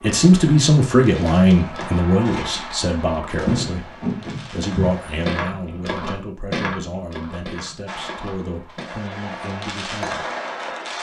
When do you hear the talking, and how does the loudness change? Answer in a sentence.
The talking can be heard from 0.0 to 10.2 s, getting quieter.